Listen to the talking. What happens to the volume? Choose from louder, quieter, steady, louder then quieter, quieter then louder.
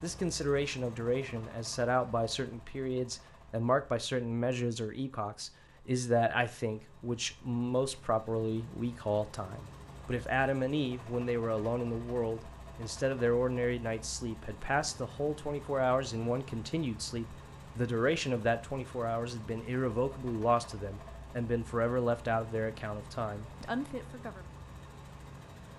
steady.